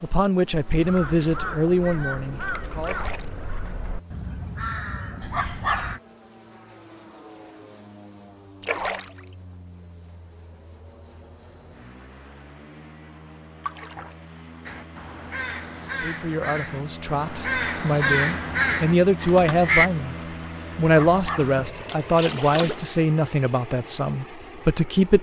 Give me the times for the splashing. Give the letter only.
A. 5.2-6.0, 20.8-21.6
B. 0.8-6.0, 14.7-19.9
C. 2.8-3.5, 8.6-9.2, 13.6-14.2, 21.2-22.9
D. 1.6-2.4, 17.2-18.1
C.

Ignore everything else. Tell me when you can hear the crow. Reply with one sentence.
You can hear the crow from 0.8 to 6.0 s and from 14.7 to 19.9 s.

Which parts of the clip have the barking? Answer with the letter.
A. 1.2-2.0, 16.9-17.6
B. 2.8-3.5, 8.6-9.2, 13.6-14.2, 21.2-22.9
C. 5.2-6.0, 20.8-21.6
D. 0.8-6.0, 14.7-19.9
C.